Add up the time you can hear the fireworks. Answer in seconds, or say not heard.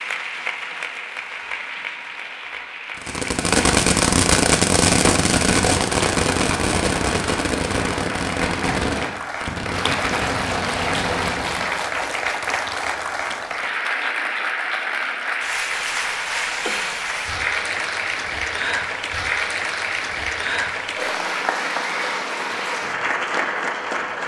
9 s.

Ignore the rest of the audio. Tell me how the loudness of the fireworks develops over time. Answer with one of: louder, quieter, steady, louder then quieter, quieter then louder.
quieter.